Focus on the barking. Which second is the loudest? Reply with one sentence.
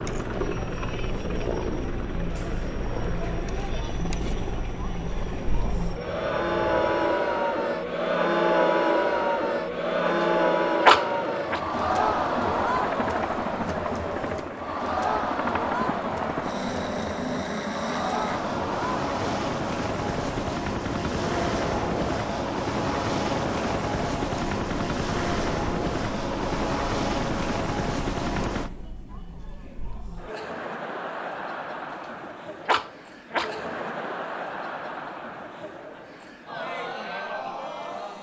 The volume of the barking peaks at 11 seconds.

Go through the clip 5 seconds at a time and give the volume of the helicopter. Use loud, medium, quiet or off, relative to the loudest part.
medium, medium, medium, loud, loud, loud, off, off.